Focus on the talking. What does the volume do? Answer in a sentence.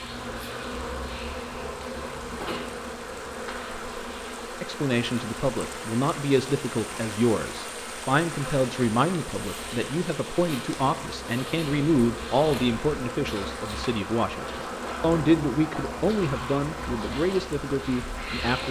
The loudness of the talking stays about the same.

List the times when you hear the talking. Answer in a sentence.
You can hear the talking from 4.6 to 18.6 s.